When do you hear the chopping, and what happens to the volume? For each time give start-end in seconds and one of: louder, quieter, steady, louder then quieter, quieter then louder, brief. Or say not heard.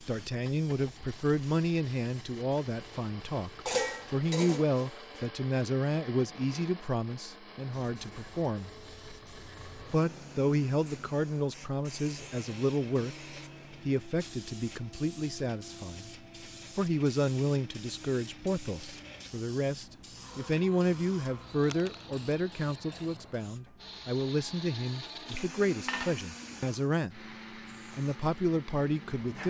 not heard.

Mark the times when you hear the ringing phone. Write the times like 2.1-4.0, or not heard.
not heard.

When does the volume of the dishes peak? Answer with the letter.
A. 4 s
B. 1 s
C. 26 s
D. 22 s
A.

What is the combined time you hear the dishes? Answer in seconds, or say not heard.
3 s.